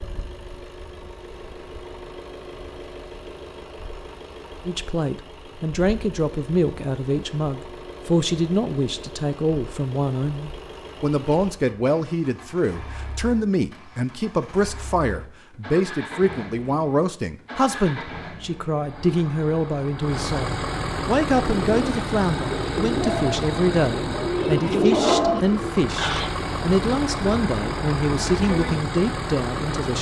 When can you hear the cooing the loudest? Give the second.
25 s.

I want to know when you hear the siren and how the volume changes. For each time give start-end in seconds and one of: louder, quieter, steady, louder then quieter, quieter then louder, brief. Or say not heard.
not heard.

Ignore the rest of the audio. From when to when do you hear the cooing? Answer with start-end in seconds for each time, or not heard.
21.4-26.3.